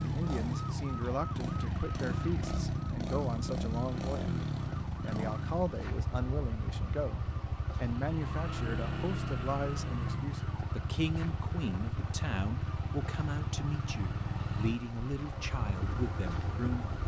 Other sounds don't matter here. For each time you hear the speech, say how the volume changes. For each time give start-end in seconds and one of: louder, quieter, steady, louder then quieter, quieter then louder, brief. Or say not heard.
0.0-16.9 steady.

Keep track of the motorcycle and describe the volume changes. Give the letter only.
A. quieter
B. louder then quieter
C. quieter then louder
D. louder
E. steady
E.